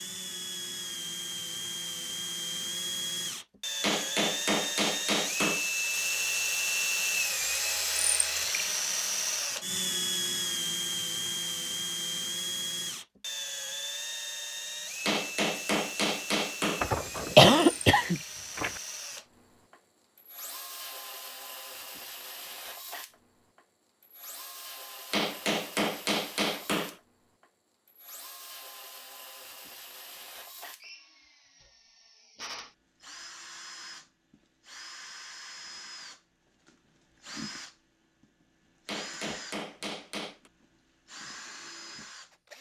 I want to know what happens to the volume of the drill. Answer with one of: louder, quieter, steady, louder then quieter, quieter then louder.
quieter.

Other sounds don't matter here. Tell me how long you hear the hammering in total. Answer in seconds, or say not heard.
7 s.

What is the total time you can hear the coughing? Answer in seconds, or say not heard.
2 s.